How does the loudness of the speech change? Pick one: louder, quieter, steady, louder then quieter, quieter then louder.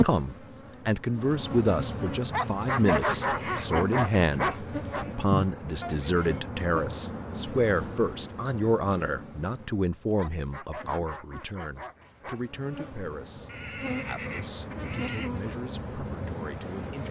quieter.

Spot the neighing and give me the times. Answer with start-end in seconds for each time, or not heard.
3.0-3.7, 5.8-6.4, 13.4-15.3.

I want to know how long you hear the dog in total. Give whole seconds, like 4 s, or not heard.
5 s.